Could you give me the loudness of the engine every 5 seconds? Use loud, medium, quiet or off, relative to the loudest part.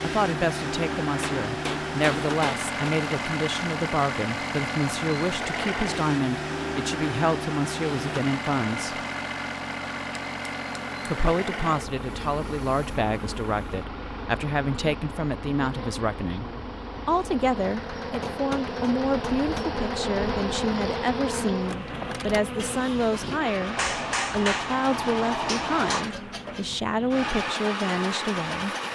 loud, loud, medium, medium, medium, loud.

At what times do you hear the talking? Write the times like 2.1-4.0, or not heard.
0.0-9.0, 11.1-16.4, 17.1-28.8.